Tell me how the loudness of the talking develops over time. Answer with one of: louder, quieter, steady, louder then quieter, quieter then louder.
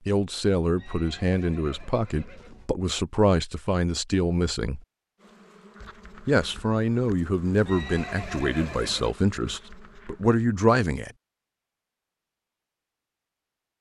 steady.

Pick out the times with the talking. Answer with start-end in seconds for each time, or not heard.
0.1-4.8, 6.2-11.1.